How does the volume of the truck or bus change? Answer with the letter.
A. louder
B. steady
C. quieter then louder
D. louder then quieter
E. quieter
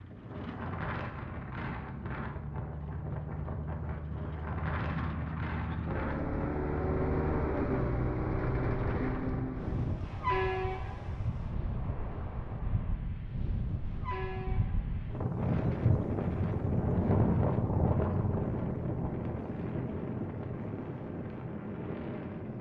D.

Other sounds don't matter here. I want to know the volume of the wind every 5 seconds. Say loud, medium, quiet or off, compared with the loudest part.
medium, medium, medium, loud, medium.